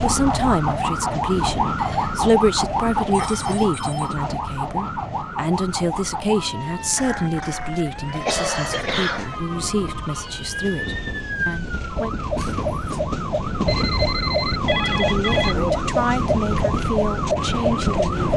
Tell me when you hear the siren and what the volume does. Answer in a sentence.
The siren can be heard from 0.0 to 18.3 s, getting quieter then louder.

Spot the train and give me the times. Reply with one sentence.
You can hear the train from 0.0 to 18.3 s.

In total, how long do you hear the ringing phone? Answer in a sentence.
You can hear the ringing phone for 4 seconds altogether.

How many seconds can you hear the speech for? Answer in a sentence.
You can hear the speech for 16 seconds altogether.